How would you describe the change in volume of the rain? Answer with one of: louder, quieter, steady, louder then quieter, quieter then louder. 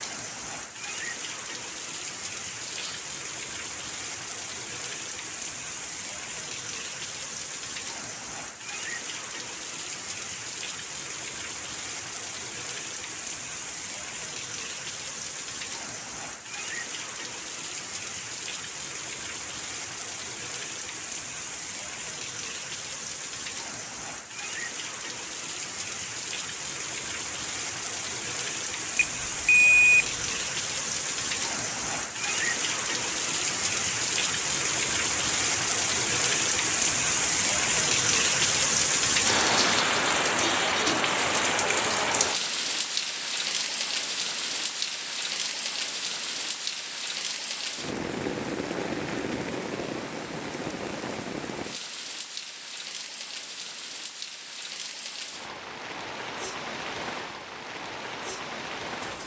louder then quieter.